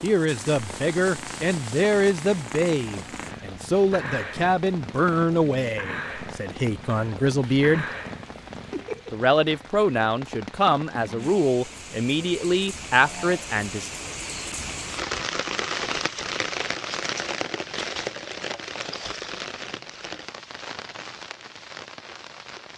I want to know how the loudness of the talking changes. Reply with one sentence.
The loudness of the talking stays about the same.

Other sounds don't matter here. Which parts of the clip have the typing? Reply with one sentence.
You can't hear the typing here.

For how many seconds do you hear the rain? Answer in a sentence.
The rain can be heard for 23 seconds in total.